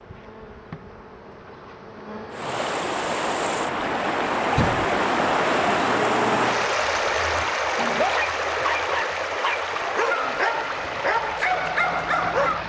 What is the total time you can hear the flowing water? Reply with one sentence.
You can hear the flowing water for 10 seconds altogether.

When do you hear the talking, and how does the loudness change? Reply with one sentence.
The talking can't be heard in this clip.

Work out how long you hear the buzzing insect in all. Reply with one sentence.
You can hear the buzzing insect for 7 seconds altogether.